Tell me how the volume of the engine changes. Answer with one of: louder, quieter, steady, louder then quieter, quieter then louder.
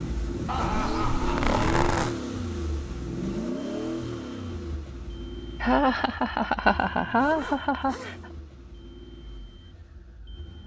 quieter.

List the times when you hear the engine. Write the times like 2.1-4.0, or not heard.
0.0-10.6.